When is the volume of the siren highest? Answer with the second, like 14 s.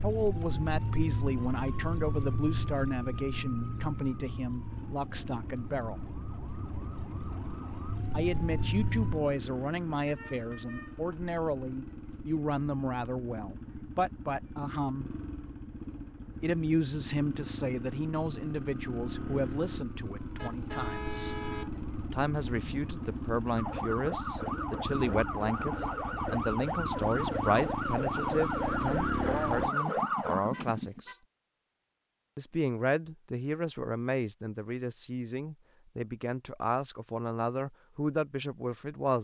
30 s.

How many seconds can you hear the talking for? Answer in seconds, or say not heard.
34 s.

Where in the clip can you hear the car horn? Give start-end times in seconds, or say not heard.
10.1-11.3, 20.4-21.9, 30.5-31.2.